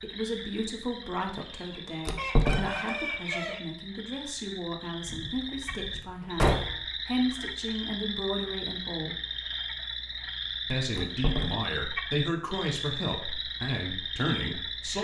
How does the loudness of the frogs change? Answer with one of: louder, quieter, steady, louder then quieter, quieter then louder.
louder.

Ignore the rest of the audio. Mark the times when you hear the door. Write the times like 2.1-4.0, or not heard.
2.0-2.9, 5.0-6.8, 10.9-11.8.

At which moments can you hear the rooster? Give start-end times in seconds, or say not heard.
1.4-3.6.